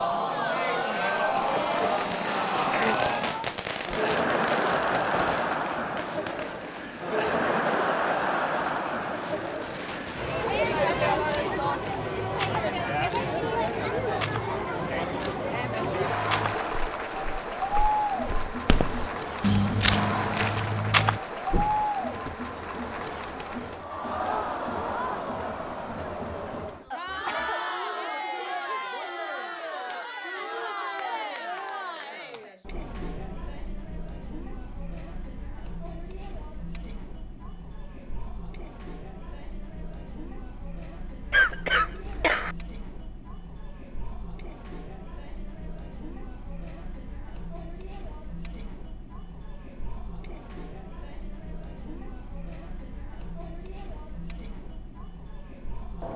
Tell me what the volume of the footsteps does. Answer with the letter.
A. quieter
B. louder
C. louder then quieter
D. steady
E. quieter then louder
B.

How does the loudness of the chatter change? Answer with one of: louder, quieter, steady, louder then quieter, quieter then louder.
quieter.